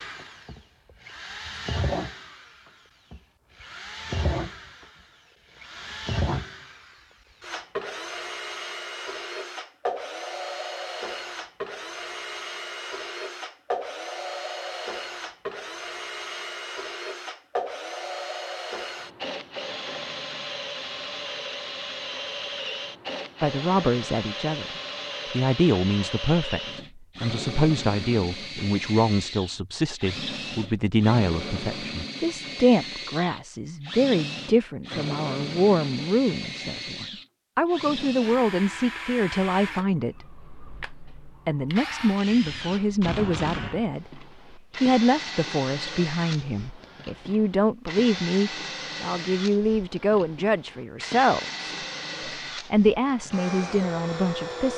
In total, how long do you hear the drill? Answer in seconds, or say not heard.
55 s.